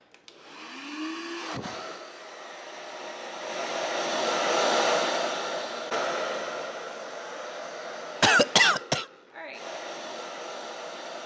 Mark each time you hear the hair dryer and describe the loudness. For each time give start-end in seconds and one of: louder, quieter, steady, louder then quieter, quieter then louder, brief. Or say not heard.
0.0-11.2 louder then quieter.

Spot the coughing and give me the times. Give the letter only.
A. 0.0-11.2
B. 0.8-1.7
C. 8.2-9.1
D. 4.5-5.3
C.